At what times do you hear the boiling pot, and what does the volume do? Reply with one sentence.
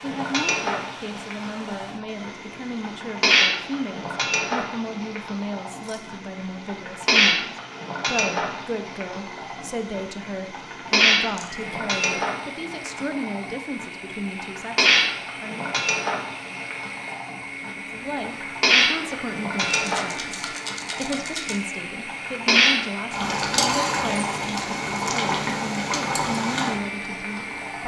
You can hear the boiling pot from 0.0 to 27.8 s, at a steady volume.